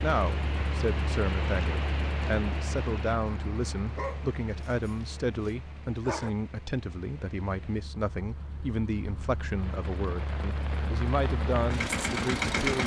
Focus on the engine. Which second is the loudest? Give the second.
12 s.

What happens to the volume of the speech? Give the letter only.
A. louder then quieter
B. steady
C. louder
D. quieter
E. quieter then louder
B.